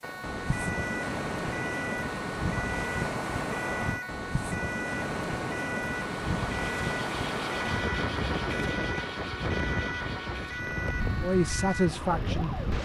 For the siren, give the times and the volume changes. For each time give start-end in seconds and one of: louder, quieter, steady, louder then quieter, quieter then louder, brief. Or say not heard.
0.0-12.8 steady.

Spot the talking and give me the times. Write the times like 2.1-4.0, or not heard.
11.2-12.6.